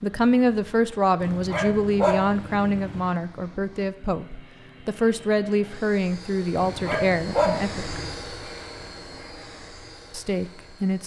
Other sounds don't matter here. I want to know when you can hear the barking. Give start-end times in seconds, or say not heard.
1.2-3.0, 6.5-8.2.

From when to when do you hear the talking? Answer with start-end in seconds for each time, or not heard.
0.0-8.0, 10.1-11.0.